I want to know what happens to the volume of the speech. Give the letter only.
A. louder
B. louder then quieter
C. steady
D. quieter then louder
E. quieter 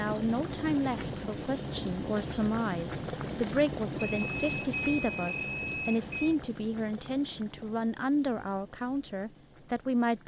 C.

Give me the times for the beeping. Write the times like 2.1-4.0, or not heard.
4.0-6.3.